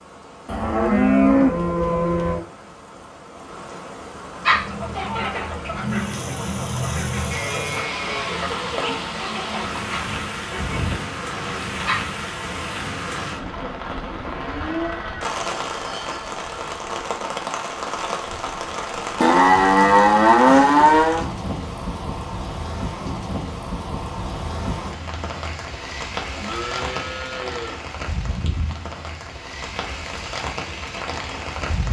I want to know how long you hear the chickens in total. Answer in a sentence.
You can hear the chickens for 8 seconds altogether.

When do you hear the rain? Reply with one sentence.
You can hear the rain from 0.0 to 31.8 s.